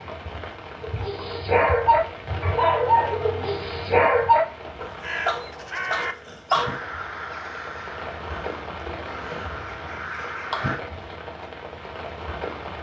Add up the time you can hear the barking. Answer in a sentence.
The barking can be heard for 6 seconds in total.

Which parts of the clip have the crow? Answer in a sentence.
The crow can be heard from 5.0 to 10.8 s.